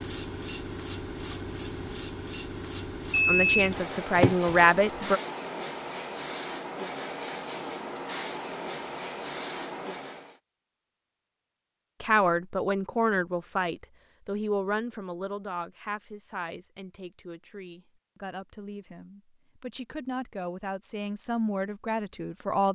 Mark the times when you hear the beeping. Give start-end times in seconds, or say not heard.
3.1-5.0.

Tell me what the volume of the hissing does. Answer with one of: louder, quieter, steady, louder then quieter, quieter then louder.
steady.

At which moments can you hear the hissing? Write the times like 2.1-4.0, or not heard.
0.0-10.4.